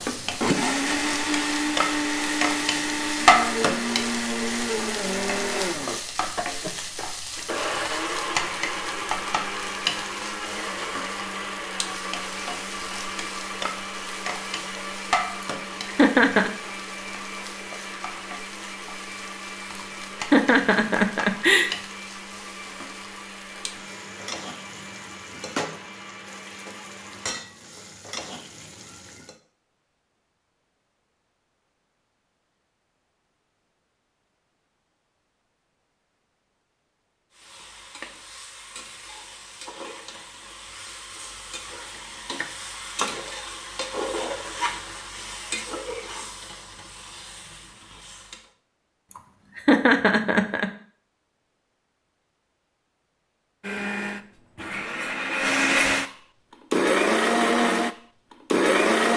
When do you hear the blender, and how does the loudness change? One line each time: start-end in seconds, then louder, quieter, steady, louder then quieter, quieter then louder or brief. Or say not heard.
0.0-27.4 quieter
53.6-59.1 louder.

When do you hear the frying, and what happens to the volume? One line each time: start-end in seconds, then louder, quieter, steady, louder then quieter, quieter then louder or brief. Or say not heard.
0.0-29.4 quieter
37.3-48.5 louder then quieter.